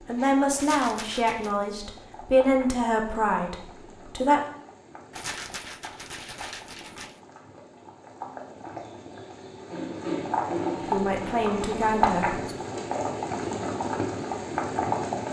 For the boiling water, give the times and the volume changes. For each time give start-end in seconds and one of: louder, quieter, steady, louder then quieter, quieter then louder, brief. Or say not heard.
0.0-15.2 louder.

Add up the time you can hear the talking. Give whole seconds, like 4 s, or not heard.
6 s.